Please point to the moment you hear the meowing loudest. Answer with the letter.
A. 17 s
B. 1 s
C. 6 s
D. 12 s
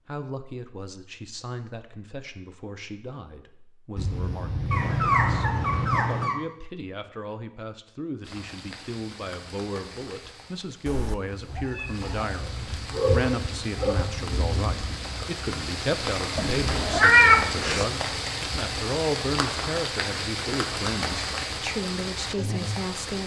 A.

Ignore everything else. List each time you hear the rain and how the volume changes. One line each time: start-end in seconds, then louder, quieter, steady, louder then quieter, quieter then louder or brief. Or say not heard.
8.2-23.2 louder.